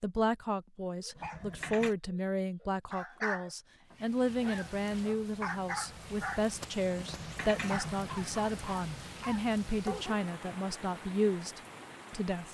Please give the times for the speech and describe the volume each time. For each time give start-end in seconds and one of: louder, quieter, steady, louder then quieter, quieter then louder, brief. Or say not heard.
0.0-12.4 steady.